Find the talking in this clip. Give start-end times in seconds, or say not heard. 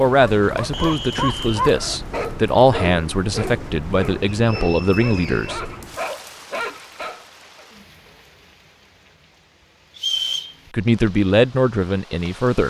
0.0-5.6, 10.7-12.6.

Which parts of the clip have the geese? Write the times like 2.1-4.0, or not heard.
not heard.